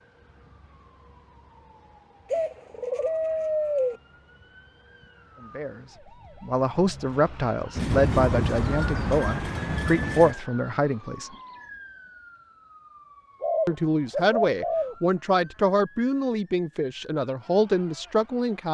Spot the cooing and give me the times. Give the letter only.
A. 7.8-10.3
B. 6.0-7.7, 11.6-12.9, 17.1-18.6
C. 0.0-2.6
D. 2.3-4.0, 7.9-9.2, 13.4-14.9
D.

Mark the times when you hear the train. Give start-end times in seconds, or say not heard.
7.8-10.3.